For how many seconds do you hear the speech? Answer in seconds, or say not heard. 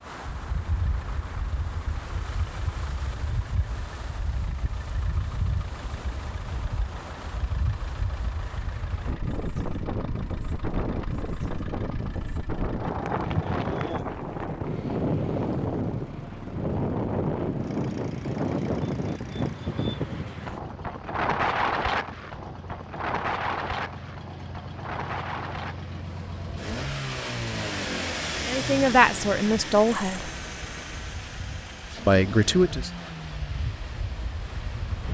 3 s.